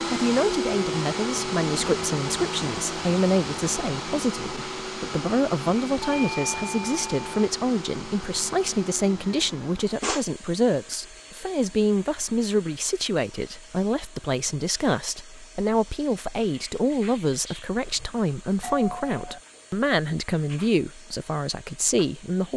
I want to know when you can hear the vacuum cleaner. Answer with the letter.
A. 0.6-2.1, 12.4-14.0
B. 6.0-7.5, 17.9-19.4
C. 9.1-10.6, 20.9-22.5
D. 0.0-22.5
D.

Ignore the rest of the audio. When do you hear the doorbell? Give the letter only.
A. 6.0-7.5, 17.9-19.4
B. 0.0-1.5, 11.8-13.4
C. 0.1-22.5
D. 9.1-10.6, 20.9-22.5
A.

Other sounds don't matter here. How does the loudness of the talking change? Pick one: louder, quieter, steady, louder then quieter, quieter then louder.
steady.